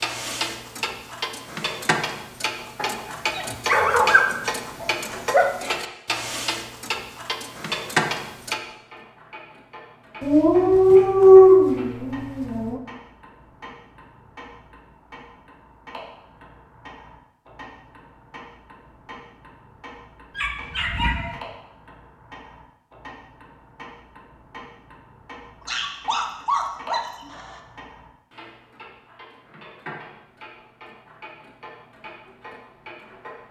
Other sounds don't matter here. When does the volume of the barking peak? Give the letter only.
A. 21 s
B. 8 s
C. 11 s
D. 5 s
C.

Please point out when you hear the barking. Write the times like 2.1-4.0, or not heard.
2.8-5.5, 10.2-12.8, 20.4-21.4, 25.6-27.6.